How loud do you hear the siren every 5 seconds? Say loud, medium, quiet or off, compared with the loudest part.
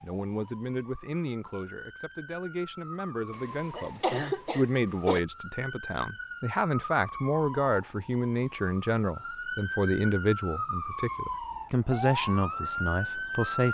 quiet, medium, loud.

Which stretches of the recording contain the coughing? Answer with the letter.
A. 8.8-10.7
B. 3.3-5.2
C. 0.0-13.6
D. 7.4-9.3
B.